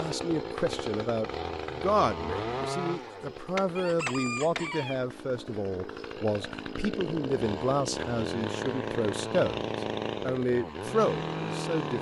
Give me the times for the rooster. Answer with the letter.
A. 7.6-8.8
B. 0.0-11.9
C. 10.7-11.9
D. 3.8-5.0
D.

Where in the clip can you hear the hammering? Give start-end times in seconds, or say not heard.
3.5-4.7.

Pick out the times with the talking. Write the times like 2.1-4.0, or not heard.
0.0-11.9.